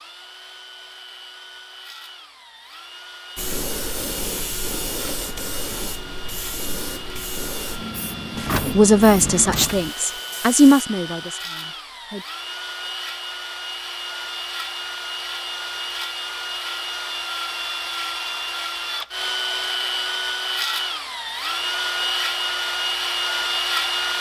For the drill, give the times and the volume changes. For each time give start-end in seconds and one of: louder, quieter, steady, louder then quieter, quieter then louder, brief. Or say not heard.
0.0-24.1 louder.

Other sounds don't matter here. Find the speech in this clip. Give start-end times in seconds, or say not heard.
8.7-12.2.